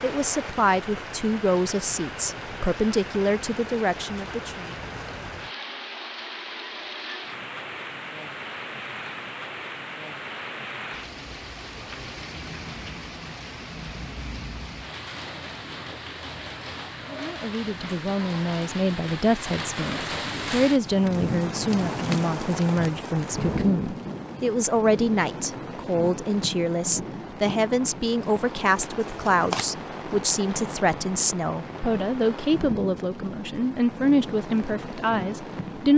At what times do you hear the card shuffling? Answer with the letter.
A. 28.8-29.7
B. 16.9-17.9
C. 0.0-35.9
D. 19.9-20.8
A.